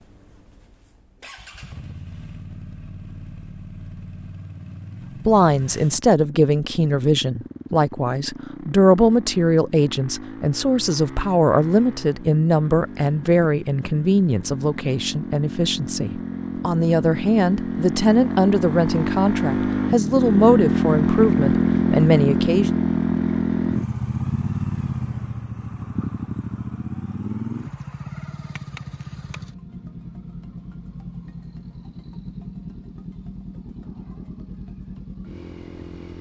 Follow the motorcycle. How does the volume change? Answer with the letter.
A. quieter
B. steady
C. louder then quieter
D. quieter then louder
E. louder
C.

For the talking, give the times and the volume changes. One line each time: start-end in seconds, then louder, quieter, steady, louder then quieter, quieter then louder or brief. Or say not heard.
5.2-22.7 steady.